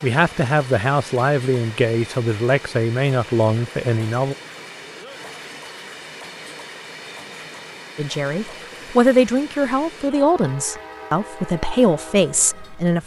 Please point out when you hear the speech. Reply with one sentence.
The speech can be heard from 0.0 to 4.3 s and from 8.0 to 13.0 s.